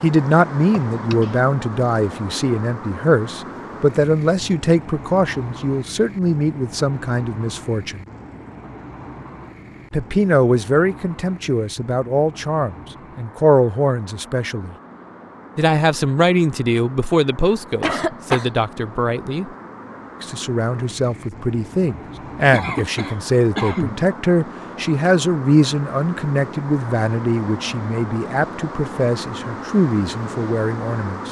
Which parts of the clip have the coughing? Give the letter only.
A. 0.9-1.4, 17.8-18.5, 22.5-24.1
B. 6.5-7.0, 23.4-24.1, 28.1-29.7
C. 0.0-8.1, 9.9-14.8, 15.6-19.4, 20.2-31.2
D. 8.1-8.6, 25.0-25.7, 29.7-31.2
A.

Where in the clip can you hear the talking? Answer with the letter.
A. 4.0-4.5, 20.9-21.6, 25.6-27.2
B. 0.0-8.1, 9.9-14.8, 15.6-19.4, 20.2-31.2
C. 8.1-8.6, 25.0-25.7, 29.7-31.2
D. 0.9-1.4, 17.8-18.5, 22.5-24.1
B.